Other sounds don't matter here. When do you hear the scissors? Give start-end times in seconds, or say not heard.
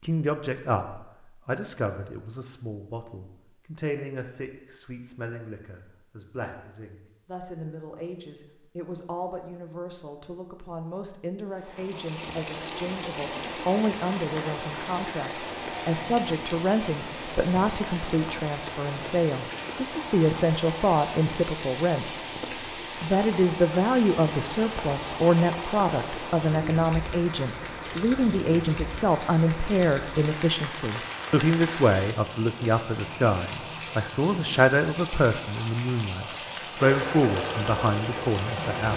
not heard.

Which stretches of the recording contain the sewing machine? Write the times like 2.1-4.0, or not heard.
36.8-38.9.